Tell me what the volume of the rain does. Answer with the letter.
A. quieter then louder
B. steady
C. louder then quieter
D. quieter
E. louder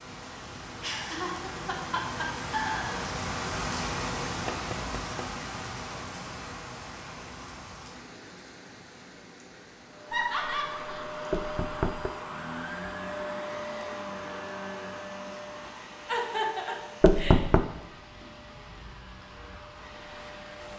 D.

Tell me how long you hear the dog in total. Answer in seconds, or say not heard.
not heard.